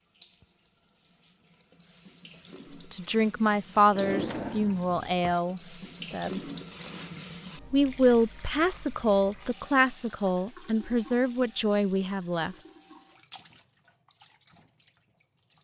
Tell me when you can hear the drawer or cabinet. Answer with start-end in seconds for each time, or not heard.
3.9-5.3.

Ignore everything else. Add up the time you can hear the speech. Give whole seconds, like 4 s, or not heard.
8 s.